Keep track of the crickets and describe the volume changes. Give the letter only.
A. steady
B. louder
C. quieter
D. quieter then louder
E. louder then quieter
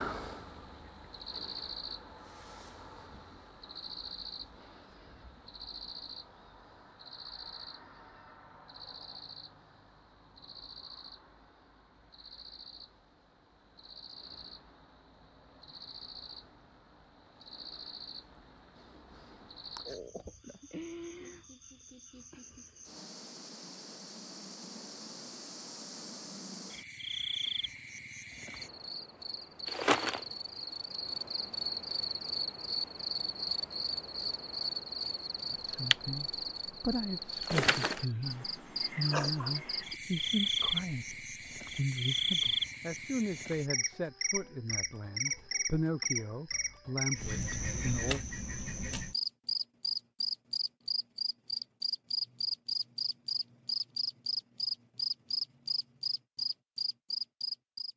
B.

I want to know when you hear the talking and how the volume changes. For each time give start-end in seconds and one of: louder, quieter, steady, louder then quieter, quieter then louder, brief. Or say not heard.
35.5-48.2 steady.